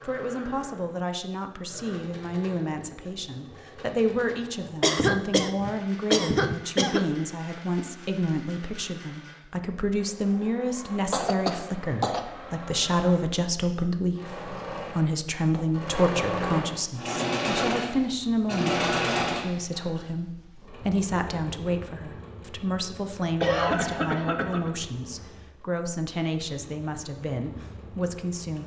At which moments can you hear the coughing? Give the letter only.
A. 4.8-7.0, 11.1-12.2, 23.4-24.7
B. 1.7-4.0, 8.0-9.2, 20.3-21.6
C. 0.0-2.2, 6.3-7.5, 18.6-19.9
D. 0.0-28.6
A.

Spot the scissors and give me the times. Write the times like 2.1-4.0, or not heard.
not heard.